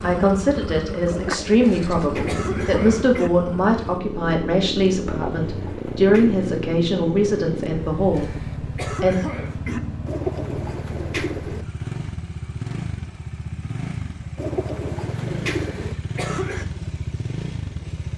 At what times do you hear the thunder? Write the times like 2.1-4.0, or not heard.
not heard.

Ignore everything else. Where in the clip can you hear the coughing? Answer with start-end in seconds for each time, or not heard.
1.6-3.3, 8.1-9.8, 15.5-16.6.